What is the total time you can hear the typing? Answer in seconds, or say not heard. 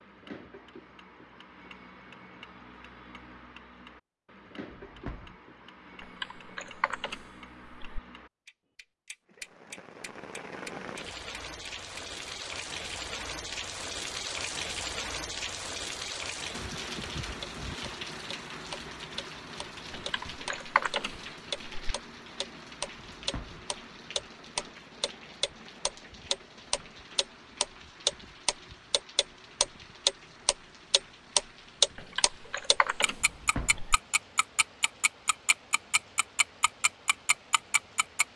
6 s.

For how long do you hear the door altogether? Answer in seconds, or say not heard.
2 s.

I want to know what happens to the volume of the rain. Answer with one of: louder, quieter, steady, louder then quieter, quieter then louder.
quieter.